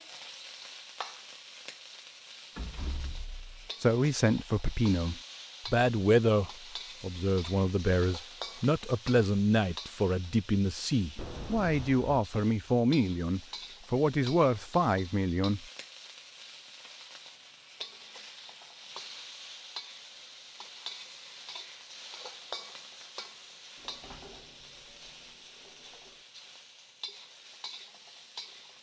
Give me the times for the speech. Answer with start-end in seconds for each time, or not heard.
3.8-15.7.